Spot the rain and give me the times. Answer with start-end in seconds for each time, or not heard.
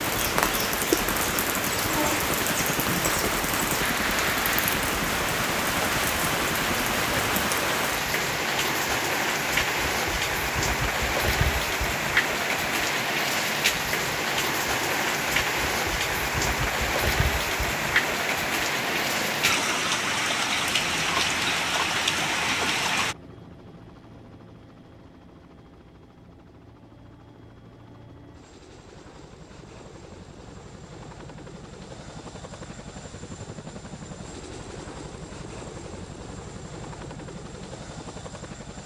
0.0-23.1.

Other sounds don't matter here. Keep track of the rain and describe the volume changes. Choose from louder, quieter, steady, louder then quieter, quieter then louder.
steady.